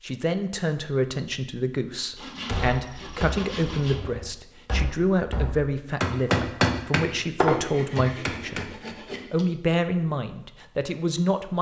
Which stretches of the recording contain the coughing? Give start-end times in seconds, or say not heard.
not heard.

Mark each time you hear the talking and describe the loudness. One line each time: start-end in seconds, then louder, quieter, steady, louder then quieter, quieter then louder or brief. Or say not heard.
0.0-8.7 steady
9.3-11.5 brief.